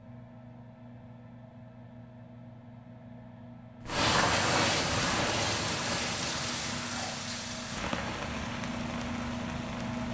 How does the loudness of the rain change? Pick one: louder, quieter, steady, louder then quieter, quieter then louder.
quieter.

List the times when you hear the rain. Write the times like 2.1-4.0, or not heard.
3.9-10.0.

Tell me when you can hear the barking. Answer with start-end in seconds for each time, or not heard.
not heard.